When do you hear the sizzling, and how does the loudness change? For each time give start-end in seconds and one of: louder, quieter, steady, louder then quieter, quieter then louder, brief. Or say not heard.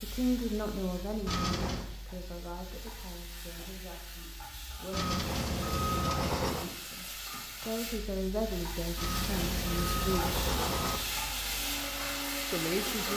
0.0-13.1 louder.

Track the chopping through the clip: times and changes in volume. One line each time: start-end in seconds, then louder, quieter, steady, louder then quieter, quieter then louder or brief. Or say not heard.
not heard.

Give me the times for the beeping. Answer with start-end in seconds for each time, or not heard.
1.2-1.9, 4.9-6.7, 8.9-11.0.